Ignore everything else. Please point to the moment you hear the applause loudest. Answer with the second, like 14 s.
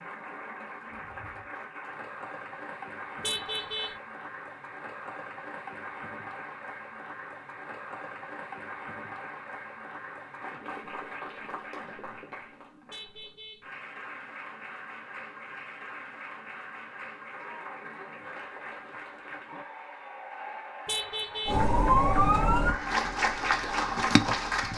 24 s.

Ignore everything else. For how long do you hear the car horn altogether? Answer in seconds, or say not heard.
2 s.